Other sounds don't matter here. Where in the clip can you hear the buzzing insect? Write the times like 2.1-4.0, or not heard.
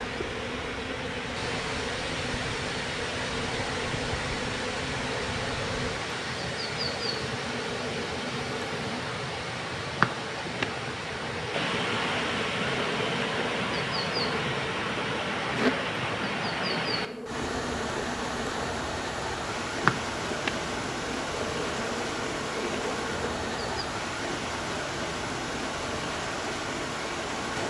0.0-23.9.